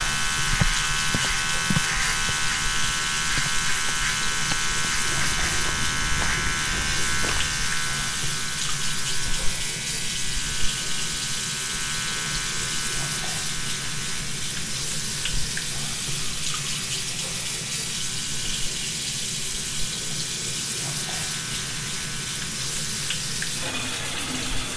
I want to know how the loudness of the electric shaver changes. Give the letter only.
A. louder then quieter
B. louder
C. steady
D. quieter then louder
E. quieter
E.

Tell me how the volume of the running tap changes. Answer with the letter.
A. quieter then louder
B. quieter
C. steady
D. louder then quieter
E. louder
C.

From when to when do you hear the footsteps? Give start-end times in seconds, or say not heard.
0.5-7.7.